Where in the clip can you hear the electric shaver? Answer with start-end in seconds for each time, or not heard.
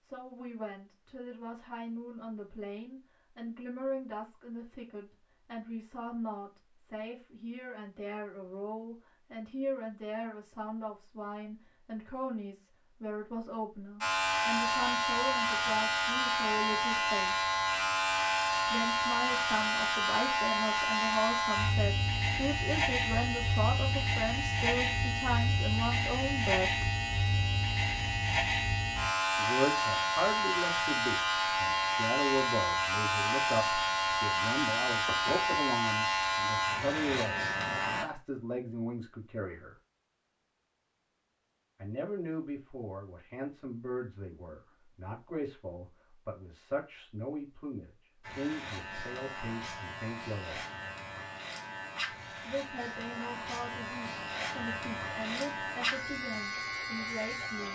14.0-38.0, 48.2-57.7.